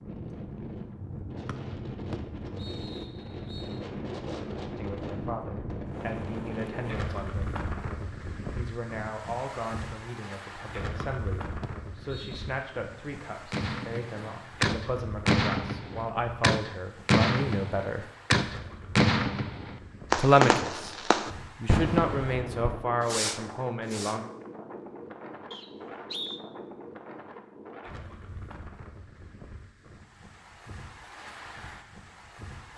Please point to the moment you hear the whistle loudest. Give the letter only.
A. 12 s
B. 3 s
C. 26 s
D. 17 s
C.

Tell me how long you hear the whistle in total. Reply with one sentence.
You can hear the whistle for 5 seconds altogether.